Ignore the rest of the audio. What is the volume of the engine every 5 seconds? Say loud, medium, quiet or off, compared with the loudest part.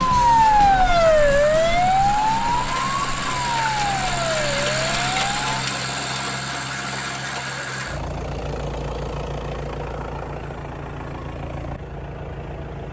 loud, loud, medium.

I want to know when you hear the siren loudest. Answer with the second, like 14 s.
1 s.